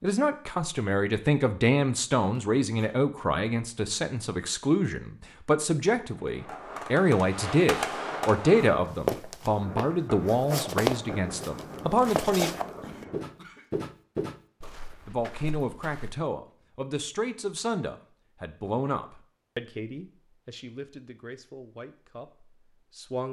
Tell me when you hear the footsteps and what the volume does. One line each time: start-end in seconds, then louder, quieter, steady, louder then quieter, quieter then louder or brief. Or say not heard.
8.6-16.2 quieter.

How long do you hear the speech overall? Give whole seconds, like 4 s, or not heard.
21 s.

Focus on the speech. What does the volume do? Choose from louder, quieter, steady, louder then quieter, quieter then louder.
quieter.